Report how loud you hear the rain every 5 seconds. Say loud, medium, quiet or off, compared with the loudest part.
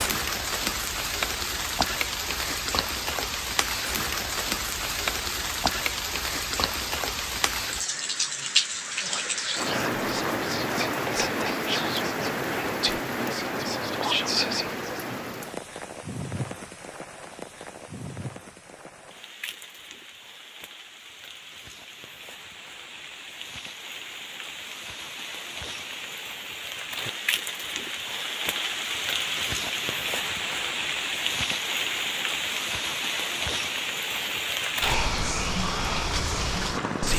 loud, loud, loud, medium, quiet, loud, loud, loud.